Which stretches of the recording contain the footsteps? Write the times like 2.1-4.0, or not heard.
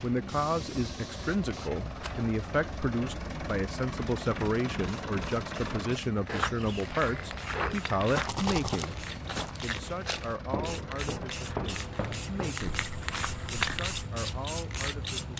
6.2-13.9.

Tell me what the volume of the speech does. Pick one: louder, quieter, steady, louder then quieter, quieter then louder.
quieter.